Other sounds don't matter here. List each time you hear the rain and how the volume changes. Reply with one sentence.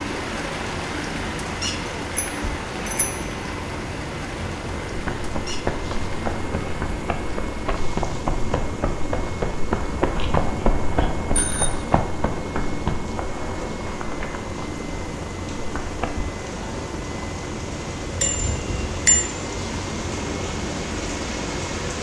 You can hear the rain from 0.0 to 21.9 s, getting quieter then louder.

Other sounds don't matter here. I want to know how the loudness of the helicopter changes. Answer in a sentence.
The volume of the helicopter stays about the same.